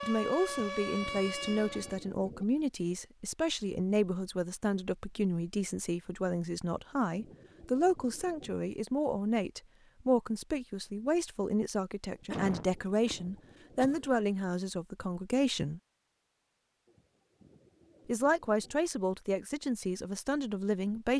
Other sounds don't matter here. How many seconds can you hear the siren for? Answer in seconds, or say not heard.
2 s.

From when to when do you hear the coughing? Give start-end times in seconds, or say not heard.
12.3-14.1.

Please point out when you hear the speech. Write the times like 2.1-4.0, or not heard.
0.0-15.8, 18.1-21.1.